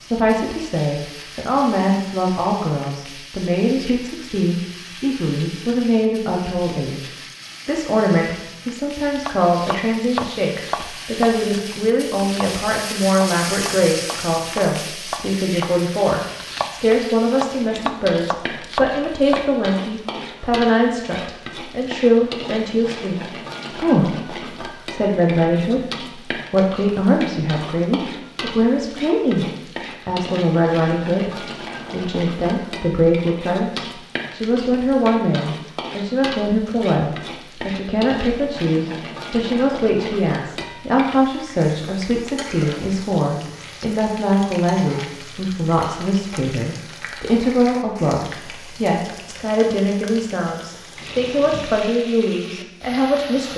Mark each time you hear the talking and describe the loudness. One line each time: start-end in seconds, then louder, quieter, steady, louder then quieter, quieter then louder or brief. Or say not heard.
0.0-53.5 steady.